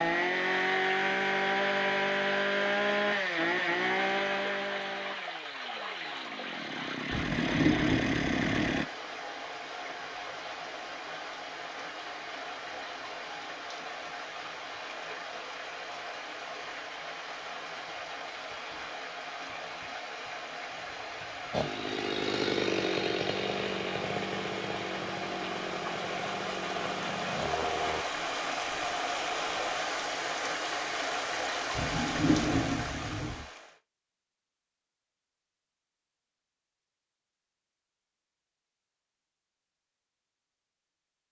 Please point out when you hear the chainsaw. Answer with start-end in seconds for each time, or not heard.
0.0-8.8, 21.5-28.1.